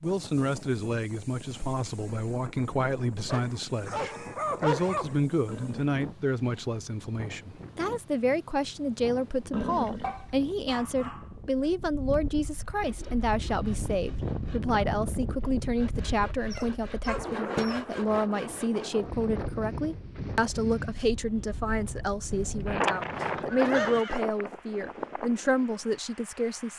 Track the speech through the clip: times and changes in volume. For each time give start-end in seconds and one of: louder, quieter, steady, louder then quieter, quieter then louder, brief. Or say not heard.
0.0-26.7 steady.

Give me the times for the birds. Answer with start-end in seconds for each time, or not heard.
not heard.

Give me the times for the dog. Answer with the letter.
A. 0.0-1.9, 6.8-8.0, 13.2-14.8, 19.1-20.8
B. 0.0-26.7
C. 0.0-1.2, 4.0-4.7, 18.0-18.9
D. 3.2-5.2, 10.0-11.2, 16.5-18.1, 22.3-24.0
D.